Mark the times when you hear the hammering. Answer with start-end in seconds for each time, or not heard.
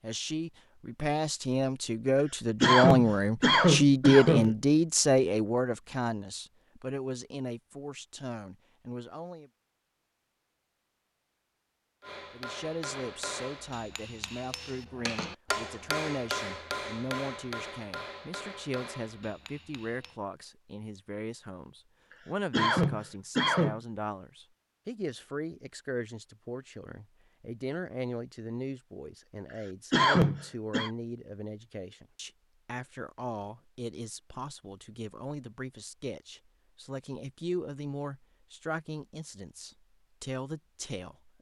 12.0-20.1.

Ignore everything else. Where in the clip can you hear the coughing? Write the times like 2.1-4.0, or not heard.
2.6-4.5, 22.5-23.8, 29.9-30.9.